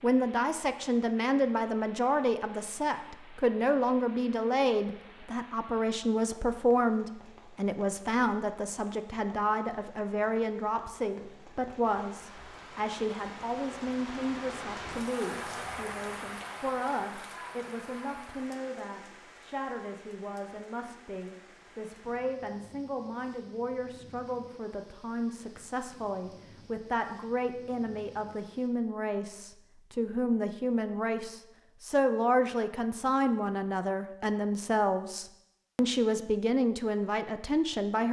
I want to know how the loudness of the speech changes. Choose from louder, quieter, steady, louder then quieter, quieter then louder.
quieter then louder.